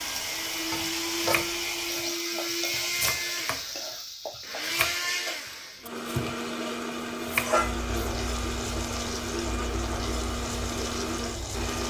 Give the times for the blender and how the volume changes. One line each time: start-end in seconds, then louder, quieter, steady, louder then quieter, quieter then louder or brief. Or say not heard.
0.0-11.8 steady.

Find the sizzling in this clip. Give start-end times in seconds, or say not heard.
0.0-11.8.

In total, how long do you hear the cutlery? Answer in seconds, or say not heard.
not heard.